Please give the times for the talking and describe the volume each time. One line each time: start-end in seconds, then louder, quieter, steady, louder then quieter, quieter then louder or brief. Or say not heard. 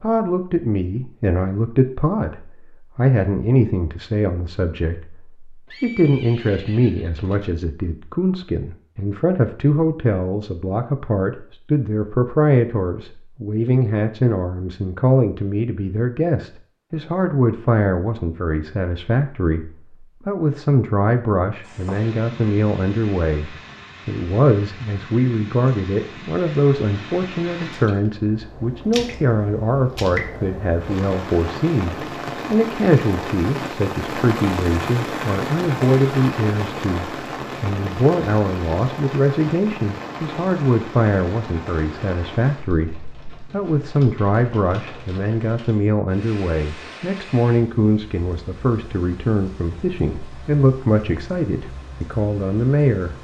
0.0-53.1 steady.